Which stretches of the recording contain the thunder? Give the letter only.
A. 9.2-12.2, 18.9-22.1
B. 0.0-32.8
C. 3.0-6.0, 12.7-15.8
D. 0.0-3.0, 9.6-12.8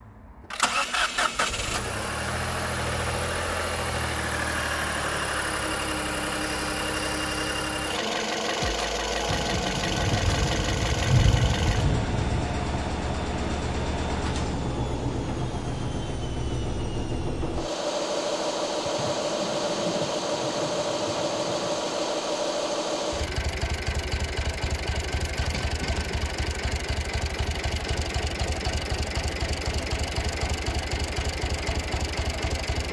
A.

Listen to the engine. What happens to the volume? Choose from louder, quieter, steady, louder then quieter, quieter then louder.
steady.